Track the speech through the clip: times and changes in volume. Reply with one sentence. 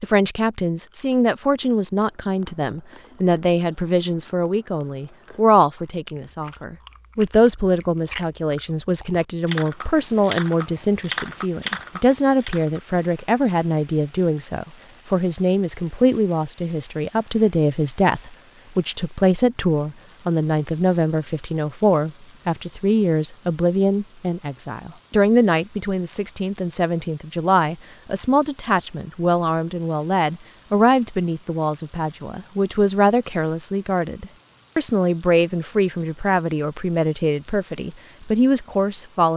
You can hear the speech from 0.0 to 39.3 s, at a steady volume.